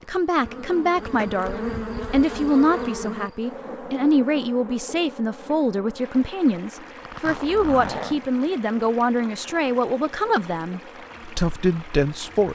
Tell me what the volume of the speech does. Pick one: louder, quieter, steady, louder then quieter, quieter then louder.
steady.